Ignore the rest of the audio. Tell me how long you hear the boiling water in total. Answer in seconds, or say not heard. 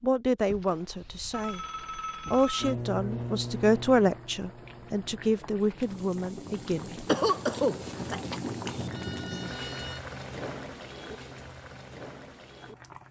9 s.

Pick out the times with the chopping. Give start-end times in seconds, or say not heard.
not heard.